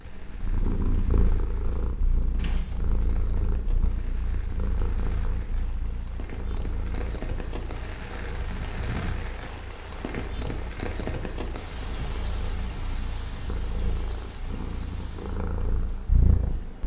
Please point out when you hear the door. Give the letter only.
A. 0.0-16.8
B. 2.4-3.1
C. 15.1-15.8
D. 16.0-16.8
B.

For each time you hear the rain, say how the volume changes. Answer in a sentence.
You can hear the rain from 0.0 to 16.8 s, getting louder then quieter.